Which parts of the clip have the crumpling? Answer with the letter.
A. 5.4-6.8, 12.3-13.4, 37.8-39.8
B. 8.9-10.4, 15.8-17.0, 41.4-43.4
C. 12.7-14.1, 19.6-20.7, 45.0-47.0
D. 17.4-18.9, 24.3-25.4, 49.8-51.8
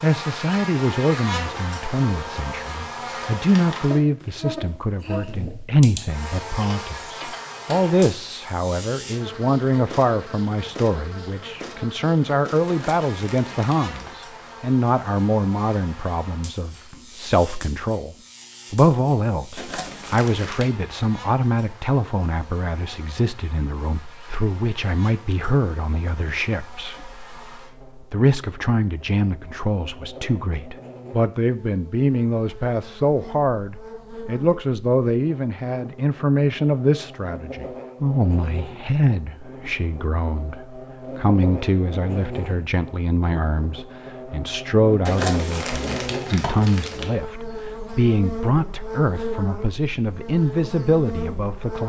C.